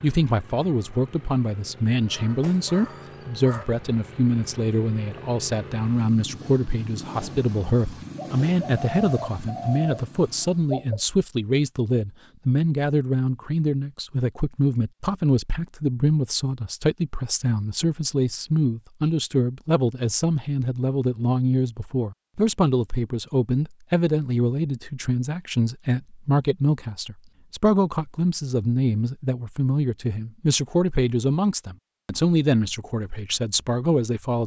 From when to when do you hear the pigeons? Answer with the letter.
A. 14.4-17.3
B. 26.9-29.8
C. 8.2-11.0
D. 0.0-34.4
C.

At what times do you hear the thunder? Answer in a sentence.
The thunder can't be heard in this clip.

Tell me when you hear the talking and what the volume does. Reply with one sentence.
The talking can be heard from 0.0 to 34.4 s, at a steady volume.